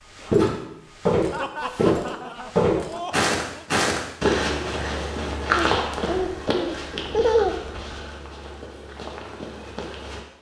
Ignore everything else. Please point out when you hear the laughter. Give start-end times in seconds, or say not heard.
1.3-3.6, 5.5-7.8.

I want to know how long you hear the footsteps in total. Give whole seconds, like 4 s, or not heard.
10 s.